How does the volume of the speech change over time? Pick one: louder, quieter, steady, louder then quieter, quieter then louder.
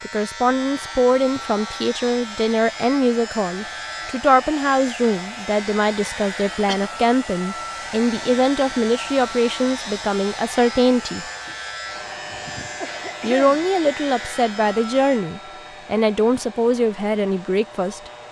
steady.